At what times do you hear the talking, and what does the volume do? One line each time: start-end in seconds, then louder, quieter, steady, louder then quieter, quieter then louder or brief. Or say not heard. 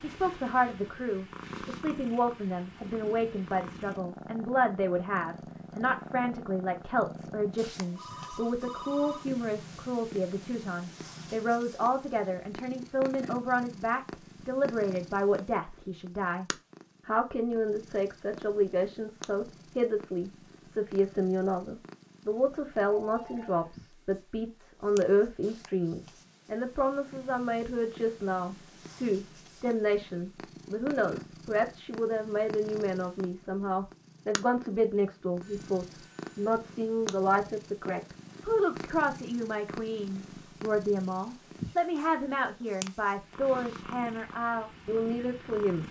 0.0-45.8 steady.